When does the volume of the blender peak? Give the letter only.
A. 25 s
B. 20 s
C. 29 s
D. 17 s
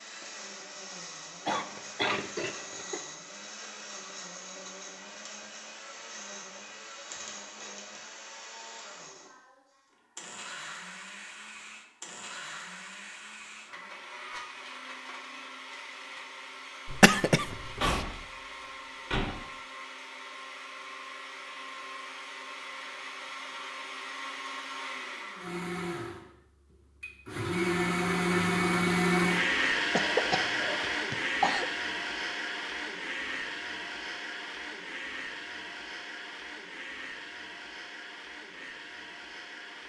C.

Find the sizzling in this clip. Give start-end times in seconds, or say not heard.
not heard.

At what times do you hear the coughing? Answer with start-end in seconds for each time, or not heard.
1.4-3.0, 16.9-18.0, 29.9-31.6.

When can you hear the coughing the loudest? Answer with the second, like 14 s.
17 s.